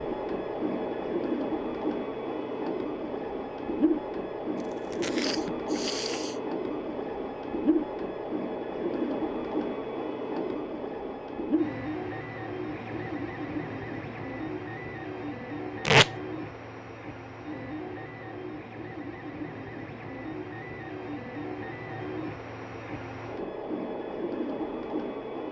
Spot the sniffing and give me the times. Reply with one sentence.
The sniffing can be heard from 5.0 to 6.4 s.